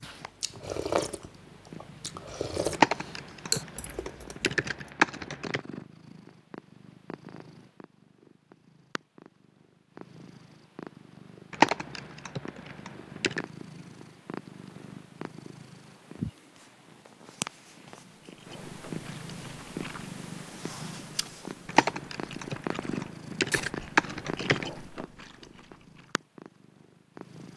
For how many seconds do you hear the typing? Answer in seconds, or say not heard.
8 s.